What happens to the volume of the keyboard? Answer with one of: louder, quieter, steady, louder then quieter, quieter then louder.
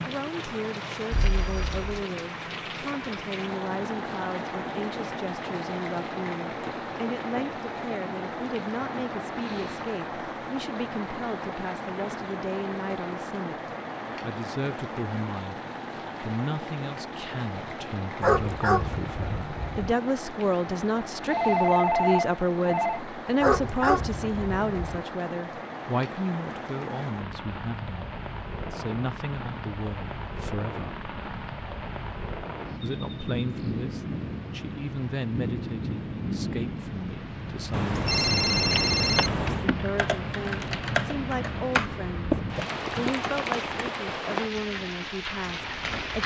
louder then quieter.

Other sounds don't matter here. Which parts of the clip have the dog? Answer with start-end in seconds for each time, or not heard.
18.2-19.9, 23.4-25.0.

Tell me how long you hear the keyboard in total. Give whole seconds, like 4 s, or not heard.
5 s.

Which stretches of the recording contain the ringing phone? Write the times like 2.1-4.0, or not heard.
1.1-1.9, 21.2-23.0, 37.7-39.7.